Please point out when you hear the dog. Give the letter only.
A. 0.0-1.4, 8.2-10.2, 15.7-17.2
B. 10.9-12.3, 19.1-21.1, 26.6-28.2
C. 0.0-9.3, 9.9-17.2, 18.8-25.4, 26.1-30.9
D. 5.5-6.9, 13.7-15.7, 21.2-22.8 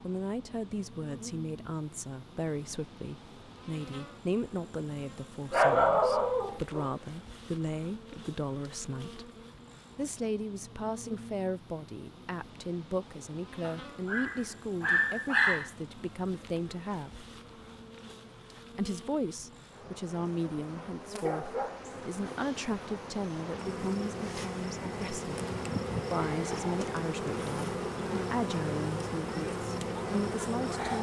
D.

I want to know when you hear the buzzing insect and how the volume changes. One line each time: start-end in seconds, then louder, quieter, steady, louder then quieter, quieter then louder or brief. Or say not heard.
0.0-30.9 louder.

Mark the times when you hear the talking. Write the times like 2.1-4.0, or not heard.
0.0-9.3, 9.9-17.2, 18.8-25.4, 26.1-30.9.